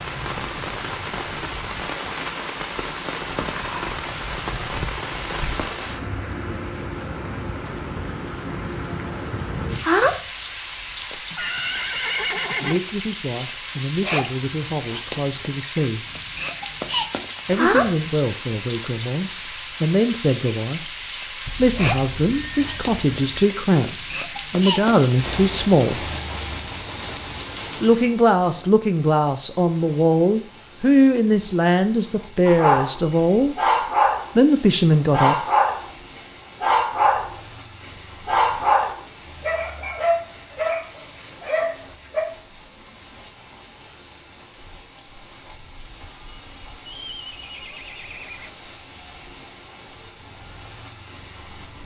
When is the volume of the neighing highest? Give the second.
12 s.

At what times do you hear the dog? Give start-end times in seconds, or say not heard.
32.5-33.0, 33.5-34.3, 35.1-35.9, 36.6-37.4, 38.2-42.2.